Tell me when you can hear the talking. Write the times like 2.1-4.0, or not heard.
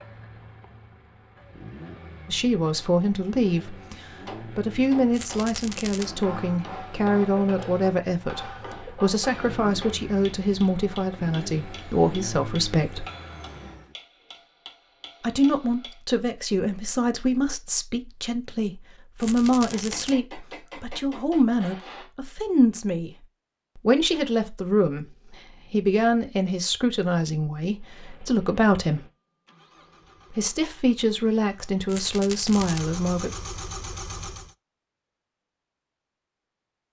2.2-4.0, 4.5-13.1, 15.2-23.1, 23.9-25.1, 25.7-29.0, 30.4-33.3.